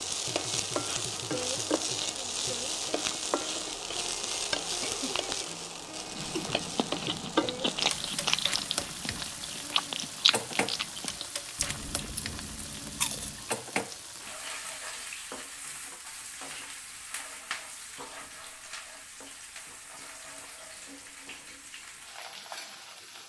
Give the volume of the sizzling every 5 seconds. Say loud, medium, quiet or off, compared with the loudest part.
loud, loud, medium, medium, quiet.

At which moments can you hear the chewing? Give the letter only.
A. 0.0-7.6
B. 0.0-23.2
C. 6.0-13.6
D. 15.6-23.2
C.